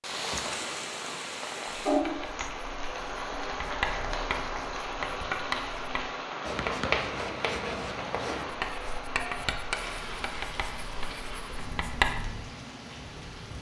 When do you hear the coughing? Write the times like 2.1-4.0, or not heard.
not heard.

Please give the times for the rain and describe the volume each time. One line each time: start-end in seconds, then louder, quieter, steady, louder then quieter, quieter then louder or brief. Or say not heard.
0.0-13.5 quieter.